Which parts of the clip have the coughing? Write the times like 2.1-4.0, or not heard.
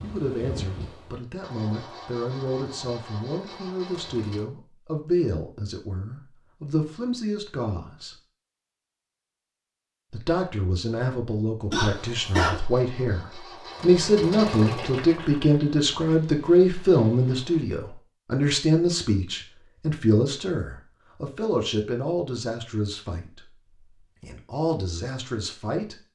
11.7-12.6.